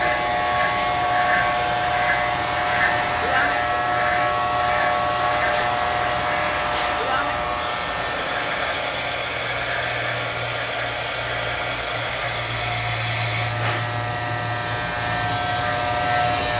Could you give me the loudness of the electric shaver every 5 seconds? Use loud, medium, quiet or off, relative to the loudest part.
loud, loud, medium, loud.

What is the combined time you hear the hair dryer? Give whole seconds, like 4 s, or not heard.
16 s.